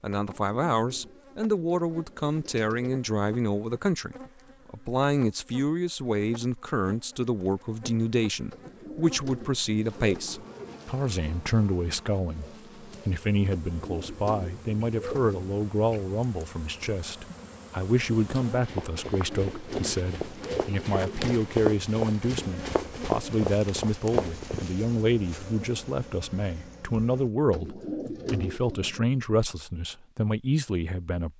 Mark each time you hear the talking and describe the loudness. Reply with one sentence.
You can hear the talking from 0.0 to 31.3 s, at a steady volume.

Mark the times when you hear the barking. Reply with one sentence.
The barking can't be heard in this clip.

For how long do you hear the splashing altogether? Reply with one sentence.
You can't hear the splashing here.